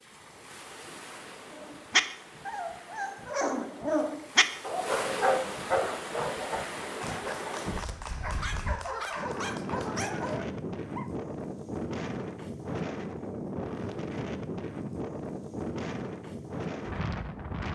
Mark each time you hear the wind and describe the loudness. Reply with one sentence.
The wind can be heard from 0.0 to 17.6 s, getting louder.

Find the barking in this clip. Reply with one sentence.
You can hear the barking from 1.6 to 11.1 s.